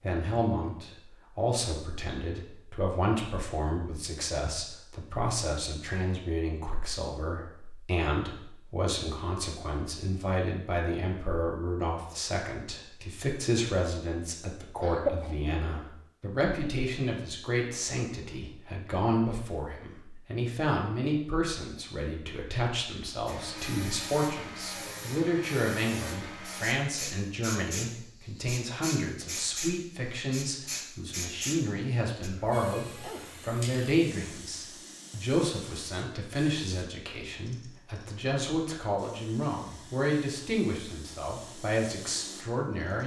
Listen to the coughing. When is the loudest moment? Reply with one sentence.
The loudest moment of the coughing is at 15 seconds.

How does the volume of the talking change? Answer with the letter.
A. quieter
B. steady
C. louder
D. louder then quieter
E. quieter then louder
B.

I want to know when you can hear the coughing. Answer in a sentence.
The coughing can be heard from 14.8 to 15.3 s and from 32.6 to 33.5 s.